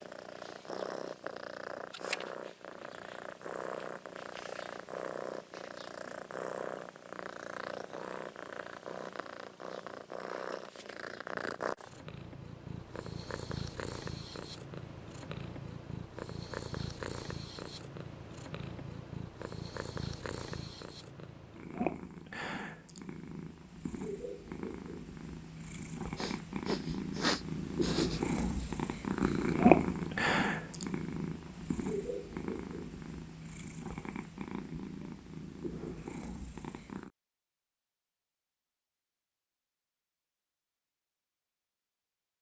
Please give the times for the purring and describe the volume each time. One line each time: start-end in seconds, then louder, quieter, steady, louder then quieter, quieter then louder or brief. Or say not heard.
0.0-37.1 louder.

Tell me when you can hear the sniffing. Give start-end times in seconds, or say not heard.
26.1-28.7.